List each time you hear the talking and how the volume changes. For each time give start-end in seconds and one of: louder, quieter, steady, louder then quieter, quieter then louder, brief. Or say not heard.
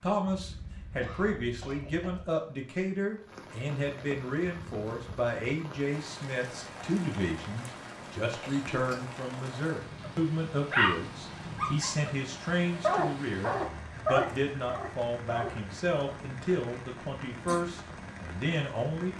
0.0-19.1 steady.